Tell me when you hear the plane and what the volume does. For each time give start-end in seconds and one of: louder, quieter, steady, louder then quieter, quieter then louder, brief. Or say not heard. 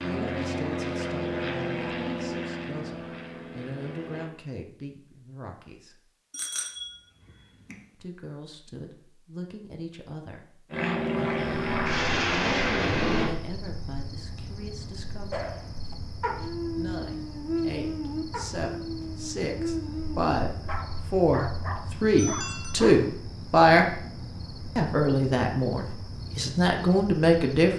0.0-4.3 quieter
10.7-13.3 brief.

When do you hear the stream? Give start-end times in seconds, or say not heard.
not heard.